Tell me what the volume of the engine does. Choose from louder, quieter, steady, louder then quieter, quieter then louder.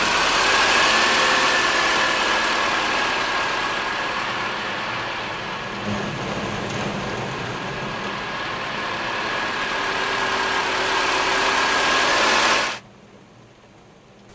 quieter then louder.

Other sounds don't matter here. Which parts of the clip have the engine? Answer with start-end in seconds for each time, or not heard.
0.0-12.8.